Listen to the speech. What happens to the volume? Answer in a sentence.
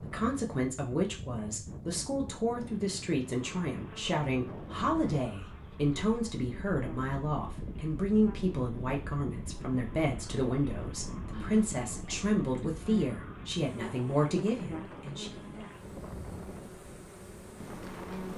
The volume of the speech stays about the same.